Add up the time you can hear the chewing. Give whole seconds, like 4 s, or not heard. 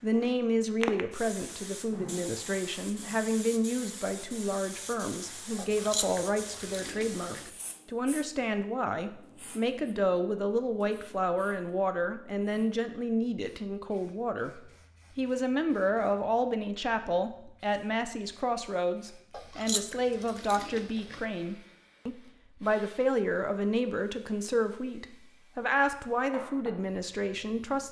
4 s.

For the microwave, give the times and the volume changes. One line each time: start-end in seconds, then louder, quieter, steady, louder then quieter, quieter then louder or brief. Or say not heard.
not heard.